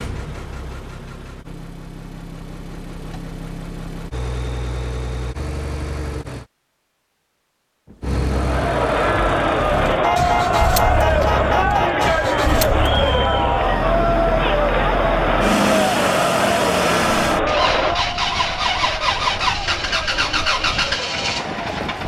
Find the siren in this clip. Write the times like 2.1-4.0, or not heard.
not heard.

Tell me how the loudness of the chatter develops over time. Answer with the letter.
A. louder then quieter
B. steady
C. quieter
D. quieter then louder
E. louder
C.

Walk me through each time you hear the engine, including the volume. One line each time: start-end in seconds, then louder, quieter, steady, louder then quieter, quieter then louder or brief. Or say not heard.
0.0-6.5 louder
8.0-22.0 louder.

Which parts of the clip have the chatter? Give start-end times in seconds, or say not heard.
8.3-22.0.